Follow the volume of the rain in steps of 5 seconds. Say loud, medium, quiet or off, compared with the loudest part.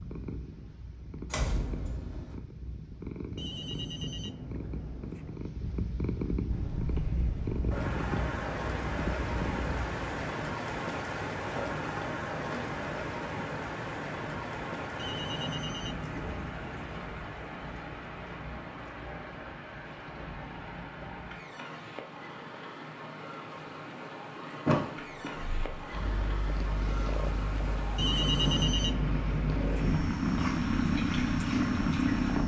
off, loud, loud, medium, medium, medium, medium.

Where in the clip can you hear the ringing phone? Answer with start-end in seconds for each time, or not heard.
3.4-5.4, 14.9-17.0, 27.9-30.0.